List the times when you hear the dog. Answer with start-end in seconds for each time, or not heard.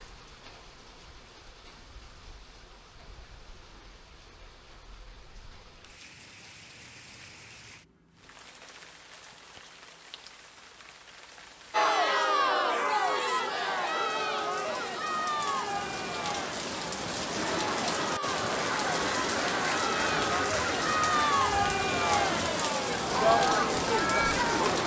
not heard.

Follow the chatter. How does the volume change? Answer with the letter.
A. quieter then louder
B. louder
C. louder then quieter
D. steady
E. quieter
A.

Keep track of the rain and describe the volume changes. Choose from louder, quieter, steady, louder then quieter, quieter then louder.
louder.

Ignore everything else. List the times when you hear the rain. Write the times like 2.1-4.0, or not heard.
0.0-24.8.